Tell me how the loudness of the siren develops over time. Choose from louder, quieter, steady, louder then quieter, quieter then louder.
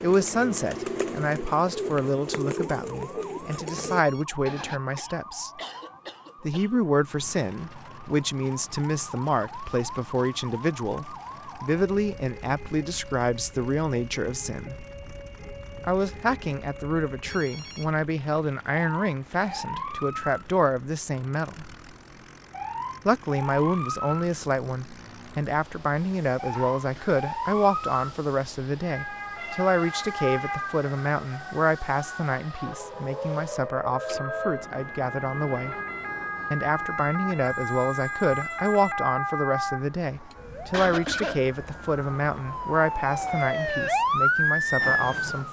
louder.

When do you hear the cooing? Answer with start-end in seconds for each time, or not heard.
0.0-4.8.